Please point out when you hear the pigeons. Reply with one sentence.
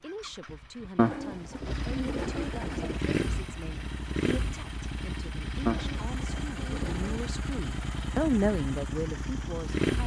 The pigeons can be heard from 0.9 to 3.0 s and from 5.7 to 7.3 s.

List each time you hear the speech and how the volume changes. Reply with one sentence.
You can hear the speech from 0.0 to 10.0 s, getting louder.